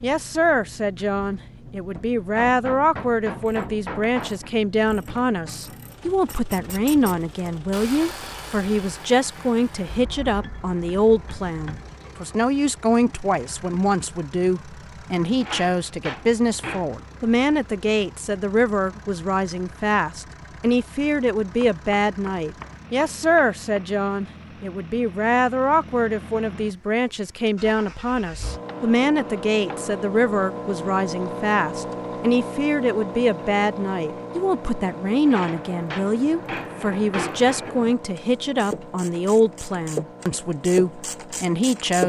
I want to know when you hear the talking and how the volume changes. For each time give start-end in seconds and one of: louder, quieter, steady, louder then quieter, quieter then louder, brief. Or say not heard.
0.0-42.0 steady.